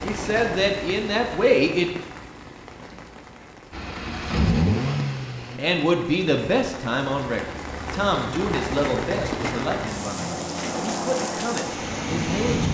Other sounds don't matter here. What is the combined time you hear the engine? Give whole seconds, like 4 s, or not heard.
2 s.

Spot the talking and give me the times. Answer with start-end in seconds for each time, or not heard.
0.0-1.9, 5.5-12.6.